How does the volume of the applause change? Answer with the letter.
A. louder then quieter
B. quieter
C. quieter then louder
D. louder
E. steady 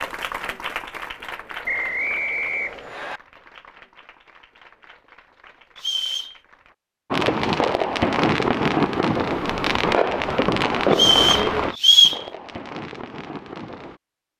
B.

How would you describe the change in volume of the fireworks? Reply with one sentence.
The volume of the fireworks goes down.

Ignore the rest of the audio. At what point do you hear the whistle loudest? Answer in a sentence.
The volume of the whistle peaks at 12 seconds.